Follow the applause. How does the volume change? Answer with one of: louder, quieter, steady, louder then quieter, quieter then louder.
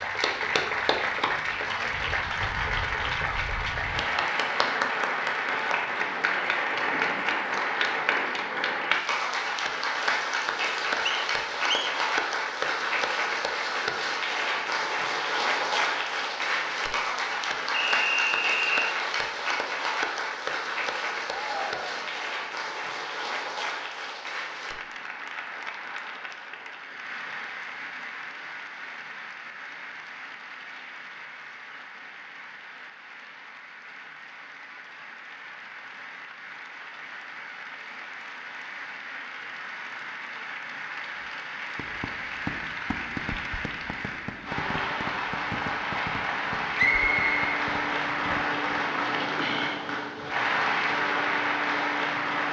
quieter then louder.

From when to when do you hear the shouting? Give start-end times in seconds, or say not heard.
21.2-22.2.